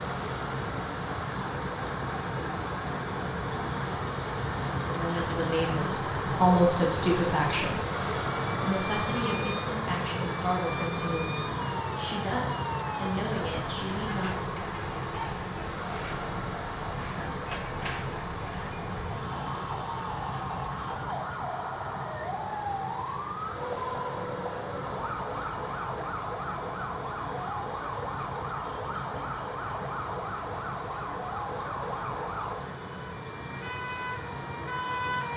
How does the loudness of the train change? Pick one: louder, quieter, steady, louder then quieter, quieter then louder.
quieter.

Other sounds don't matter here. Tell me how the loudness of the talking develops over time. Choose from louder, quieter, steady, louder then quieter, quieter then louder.
quieter.